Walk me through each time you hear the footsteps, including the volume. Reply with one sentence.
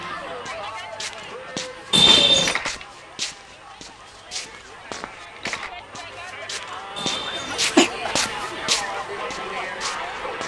You can hear the footsteps from 0.0 to 10.4 s, getting louder.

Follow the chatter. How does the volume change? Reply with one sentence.
The loudness of the chatter goes down, then up.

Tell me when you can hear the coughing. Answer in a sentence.
The coughing can be heard from 1.9 to 2.6 s and from 7.0 to 7.9 s.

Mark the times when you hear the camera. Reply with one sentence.
You can hear the camera from 2.4 to 2.9 s and from 5.3 to 5.8 s.